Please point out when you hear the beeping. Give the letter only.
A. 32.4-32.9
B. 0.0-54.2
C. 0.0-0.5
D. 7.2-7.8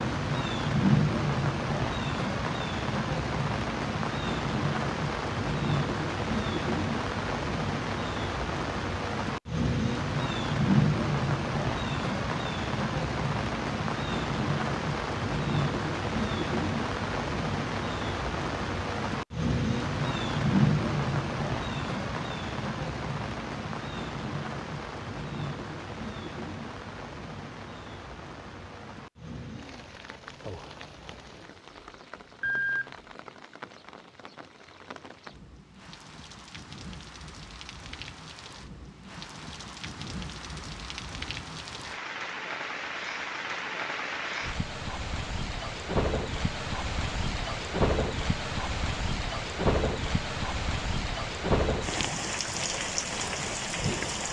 A.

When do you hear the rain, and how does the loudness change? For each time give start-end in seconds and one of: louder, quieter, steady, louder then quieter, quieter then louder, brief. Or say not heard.
0.0-54.2 quieter then louder.